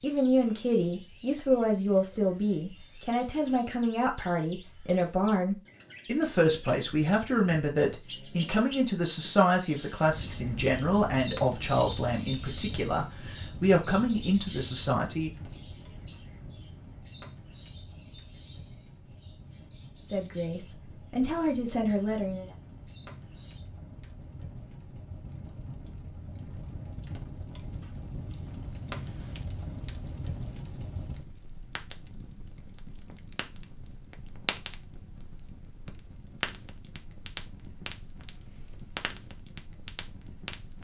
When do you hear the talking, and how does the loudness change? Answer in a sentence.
You can hear the talking from 0.0 to 15.3 s, at a steady volume; and briefly from 19.8 to 22.5 s.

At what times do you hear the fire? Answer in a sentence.
You can hear the fire from 10.0 to 40.7 s.